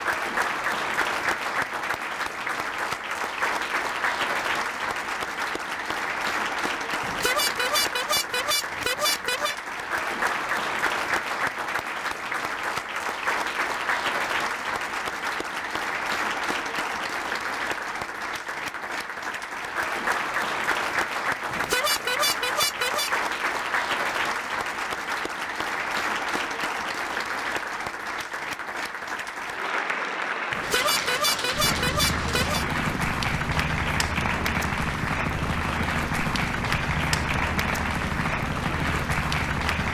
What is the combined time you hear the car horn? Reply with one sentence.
The car horn can be heard for 6 seconds in total.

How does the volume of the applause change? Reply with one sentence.
The volume of the applause stays about the same.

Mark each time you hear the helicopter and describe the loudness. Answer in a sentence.
The helicopter can be heard from 31.5 to 39.8 s, at a steady volume.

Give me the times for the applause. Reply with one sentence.
You can hear the applause from 0.0 to 39.8 s.